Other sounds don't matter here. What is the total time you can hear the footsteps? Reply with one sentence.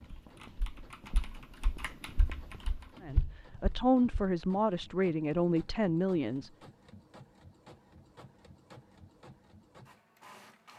The footsteps can be heard for 4 seconds in total.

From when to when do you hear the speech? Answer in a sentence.
You can hear the speech from 3.0 to 6.5 s.